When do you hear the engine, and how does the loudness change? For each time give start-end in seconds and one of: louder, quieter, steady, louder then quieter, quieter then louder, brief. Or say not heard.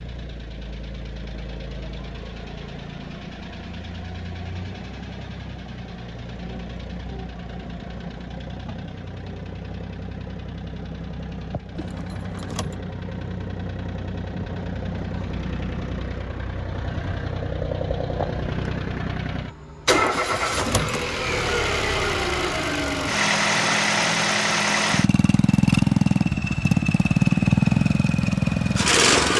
0.0-29.3 louder.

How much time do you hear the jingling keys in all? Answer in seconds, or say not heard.
2 s.